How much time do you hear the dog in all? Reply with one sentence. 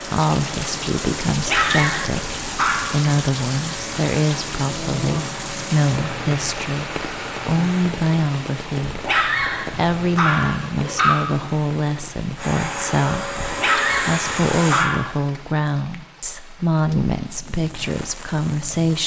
You can hear the dog for 6 seconds altogether.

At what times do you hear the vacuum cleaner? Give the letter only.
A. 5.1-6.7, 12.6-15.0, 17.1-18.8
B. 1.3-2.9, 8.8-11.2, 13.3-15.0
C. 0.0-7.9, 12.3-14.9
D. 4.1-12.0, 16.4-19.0
C.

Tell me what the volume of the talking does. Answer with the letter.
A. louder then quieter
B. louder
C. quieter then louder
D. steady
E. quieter
D.